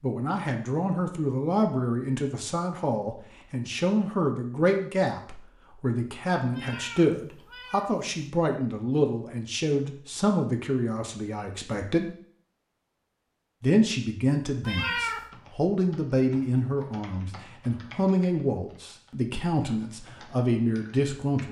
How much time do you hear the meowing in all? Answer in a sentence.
The meowing can be heard for 2 seconds in total.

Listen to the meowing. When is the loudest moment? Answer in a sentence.
The loudest moment of the meowing is at 15 seconds.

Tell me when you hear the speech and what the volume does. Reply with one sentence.
The speech can be heard from 0.0 to 12.1 s, at a steady volume; and from 13.6 to 21.4 s, at a steady volume.